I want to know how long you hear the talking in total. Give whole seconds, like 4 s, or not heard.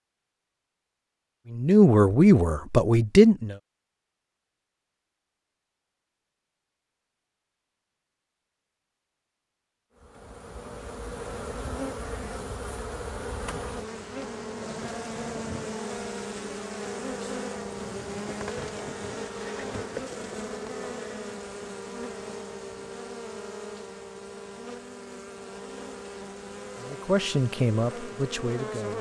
4 s.